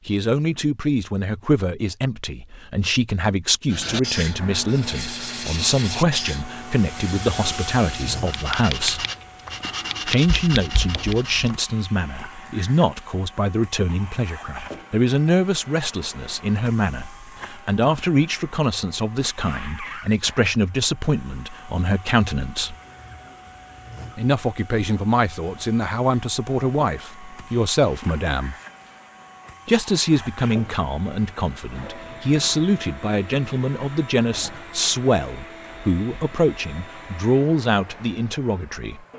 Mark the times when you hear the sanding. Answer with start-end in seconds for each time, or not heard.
3.6-11.6.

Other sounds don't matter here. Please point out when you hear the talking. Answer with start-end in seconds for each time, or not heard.
0.1-9.1, 10.1-22.8, 24.1-28.6, 29.6-39.0.